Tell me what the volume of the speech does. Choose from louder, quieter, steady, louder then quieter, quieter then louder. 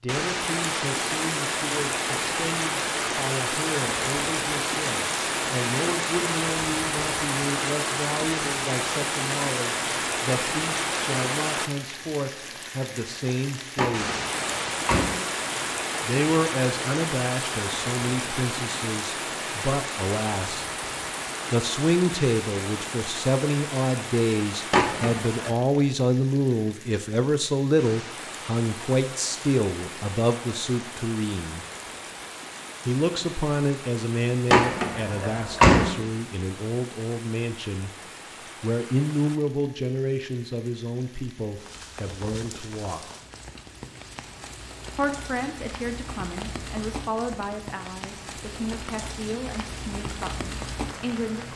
louder then quieter.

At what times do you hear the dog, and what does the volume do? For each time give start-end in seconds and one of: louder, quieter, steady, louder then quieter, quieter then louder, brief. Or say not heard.
not heard.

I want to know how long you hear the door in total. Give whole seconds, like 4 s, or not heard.
4 s.